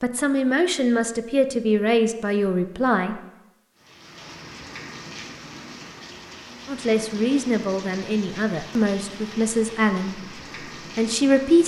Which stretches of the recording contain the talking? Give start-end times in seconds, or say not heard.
0.0-3.2, 6.7-11.6.